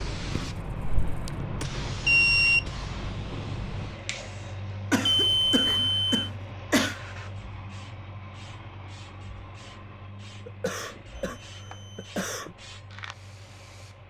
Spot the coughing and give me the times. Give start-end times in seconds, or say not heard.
0.3-1.4, 4.9-7.0, 10.4-12.6.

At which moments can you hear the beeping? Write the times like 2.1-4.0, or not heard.
1.6-2.6, 5.0-6.2, 11.2-12.2.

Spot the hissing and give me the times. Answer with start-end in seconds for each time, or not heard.
0.0-14.0.